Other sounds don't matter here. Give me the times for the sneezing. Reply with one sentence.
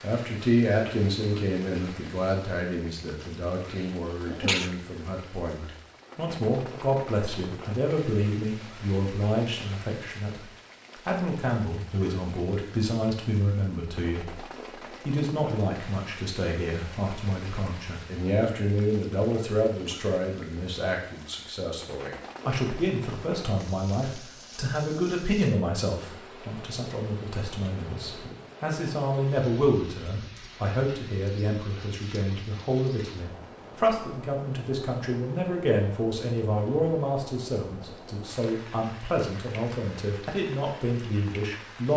The sneezing can be heard from 3.6 to 4.8 s.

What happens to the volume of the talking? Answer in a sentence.
The volume of the talking stays about the same.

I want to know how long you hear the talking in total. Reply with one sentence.
The talking can be heard for 41 seconds in total.